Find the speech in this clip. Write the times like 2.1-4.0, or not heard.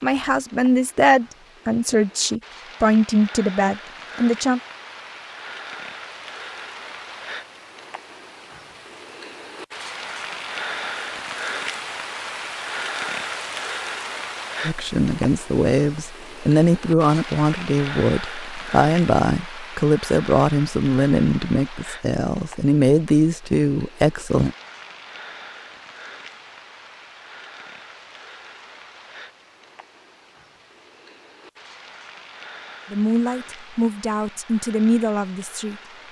0.0-4.6, 14.6-24.5, 32.9-35.8.